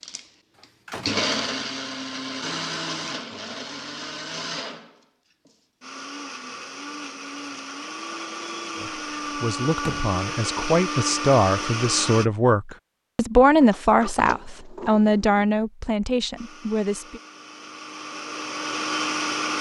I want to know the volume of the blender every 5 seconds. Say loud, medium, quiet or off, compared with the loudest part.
loud, medium, loud, loud.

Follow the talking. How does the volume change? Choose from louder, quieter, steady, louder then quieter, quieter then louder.
louder then quieter.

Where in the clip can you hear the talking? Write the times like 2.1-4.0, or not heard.
8.8-17.2.